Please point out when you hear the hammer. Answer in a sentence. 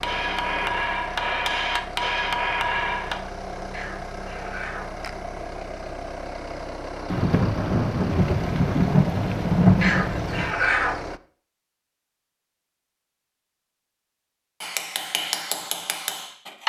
You can hear the hammer from 0.0 to 3.2 s and from 14.6 to 16.6 s.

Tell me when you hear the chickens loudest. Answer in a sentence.
The loudest moment of the chickens is at 11 seconds.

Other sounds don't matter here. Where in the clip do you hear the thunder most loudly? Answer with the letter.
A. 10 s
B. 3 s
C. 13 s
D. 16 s
A.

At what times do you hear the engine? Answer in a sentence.
The engine can be heard from 0.0 to 11.2 s.